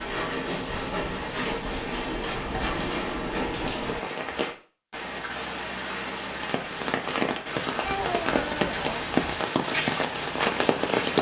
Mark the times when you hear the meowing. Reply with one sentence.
You can hear the meowing from 0.5 to 1.4 s and from 7.8 to 9.2 s.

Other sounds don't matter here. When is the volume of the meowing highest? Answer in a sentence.
The loudest moment of the meowing is at 8 seconds.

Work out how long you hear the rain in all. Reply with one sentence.
You can hear the rain for 11 seconds altogether.